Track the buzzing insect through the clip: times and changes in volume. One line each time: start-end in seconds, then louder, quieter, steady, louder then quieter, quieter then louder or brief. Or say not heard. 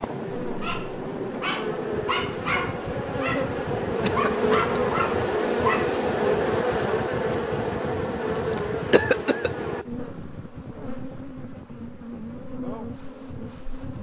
0.0-13.9 louder then quieter.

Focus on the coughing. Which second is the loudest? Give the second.
9 s.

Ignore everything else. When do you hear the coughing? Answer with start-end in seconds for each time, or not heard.
4.0-4.8, 8.6-9.5.